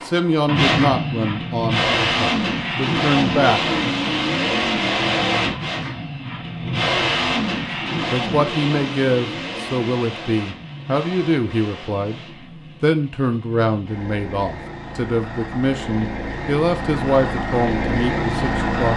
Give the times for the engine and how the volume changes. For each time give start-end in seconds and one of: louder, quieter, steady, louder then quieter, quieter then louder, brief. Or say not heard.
0.0-18.9 quieter then louder.